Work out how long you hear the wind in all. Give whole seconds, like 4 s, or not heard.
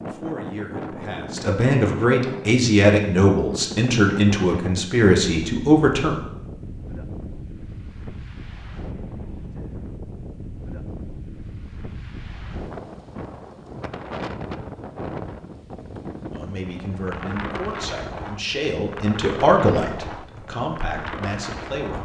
22 s.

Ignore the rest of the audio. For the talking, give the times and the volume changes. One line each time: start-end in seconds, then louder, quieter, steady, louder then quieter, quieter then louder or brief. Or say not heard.
0.1-6.2 louder
16.3-21.9 louder then quieter.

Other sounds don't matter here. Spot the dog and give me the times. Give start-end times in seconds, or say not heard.
not heard.